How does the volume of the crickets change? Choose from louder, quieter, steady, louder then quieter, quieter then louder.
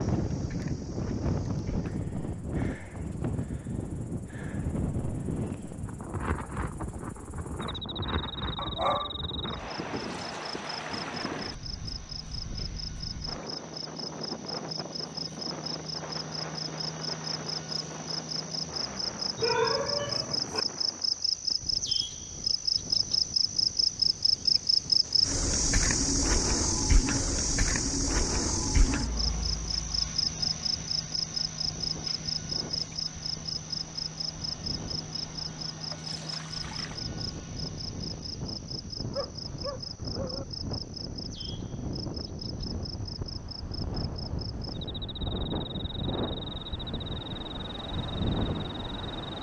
louder then quieter.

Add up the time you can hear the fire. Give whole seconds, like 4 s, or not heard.
not heard.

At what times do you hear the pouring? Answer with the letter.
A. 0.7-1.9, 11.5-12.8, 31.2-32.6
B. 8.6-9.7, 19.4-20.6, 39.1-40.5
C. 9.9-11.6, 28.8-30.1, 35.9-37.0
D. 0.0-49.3
C.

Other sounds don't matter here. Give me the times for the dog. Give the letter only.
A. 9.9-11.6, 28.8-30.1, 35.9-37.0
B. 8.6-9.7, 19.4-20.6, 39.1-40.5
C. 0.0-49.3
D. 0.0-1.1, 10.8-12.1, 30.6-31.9
B.